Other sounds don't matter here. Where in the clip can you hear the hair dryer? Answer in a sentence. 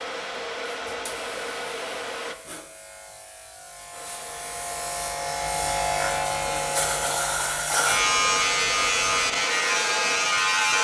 The hair dryer can be heard from 0.0 to 2.4 s and from 3.9 to 10.7 s.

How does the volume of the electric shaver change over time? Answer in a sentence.
The loudness of the electric shaver goes up.